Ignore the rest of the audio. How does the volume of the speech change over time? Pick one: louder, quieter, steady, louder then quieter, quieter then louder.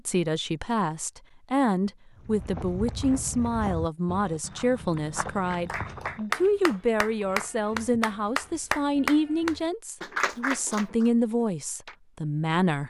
steady.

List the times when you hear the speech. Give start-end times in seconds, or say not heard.
0.1-12.8.